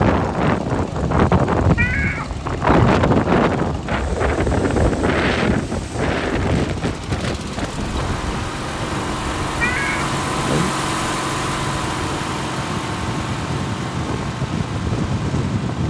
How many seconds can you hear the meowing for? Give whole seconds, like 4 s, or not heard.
2 s.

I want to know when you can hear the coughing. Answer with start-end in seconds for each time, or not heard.
not heard.